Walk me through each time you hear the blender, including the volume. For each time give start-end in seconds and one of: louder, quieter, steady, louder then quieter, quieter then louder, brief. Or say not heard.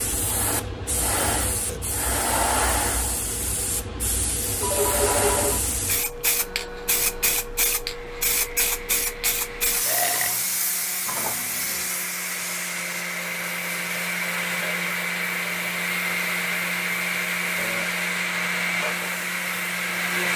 6.3-20.3 louder.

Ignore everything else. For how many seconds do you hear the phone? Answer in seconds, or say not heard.
2 s.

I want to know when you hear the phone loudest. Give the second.
5 s.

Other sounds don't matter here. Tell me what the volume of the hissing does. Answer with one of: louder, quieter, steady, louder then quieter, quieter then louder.
quieter.